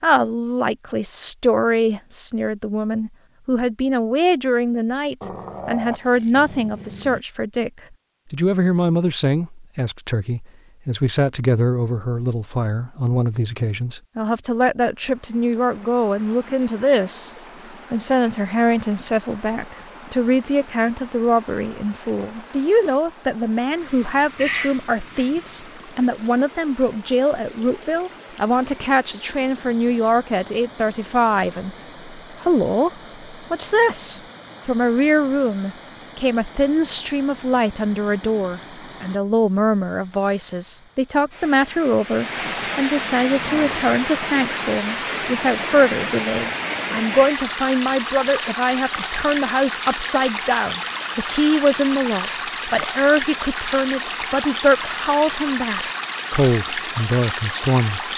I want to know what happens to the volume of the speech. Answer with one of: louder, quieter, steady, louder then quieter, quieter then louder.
steady.